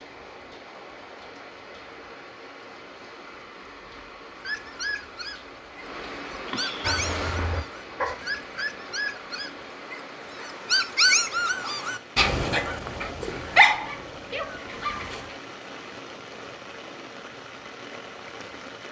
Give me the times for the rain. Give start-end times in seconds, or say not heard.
0.0-18.8.